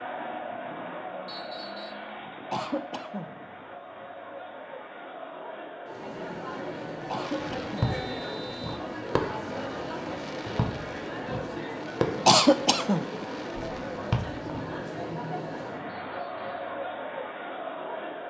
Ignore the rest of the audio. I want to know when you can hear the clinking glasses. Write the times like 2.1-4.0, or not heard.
not heard.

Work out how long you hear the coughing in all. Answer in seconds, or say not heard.
2 s.